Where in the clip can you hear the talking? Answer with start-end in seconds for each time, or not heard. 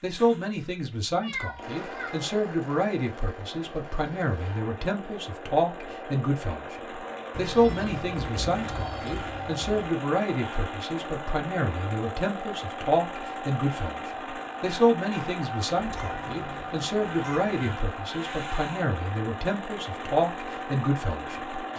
0.0-21.6.